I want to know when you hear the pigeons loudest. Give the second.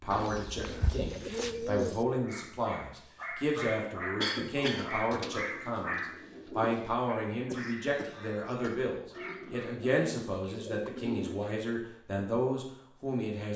2 s.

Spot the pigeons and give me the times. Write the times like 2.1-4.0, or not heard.
0.1-2.0, 5.1-7.0, 9.1-11.6.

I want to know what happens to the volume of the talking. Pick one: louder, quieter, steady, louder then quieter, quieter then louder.
steady.